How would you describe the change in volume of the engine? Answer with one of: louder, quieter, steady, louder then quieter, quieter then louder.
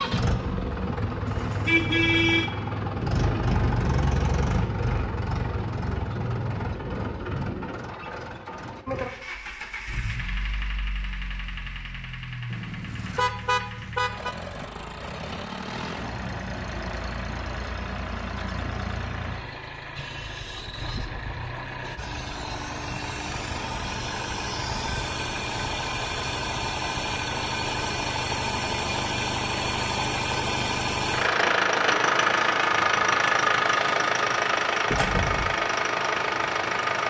quieter then louder.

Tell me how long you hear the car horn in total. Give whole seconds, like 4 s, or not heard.
4 s.